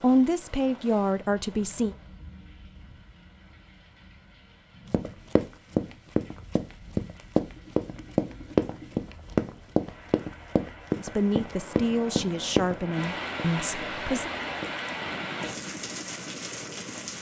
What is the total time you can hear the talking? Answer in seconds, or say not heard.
5 s.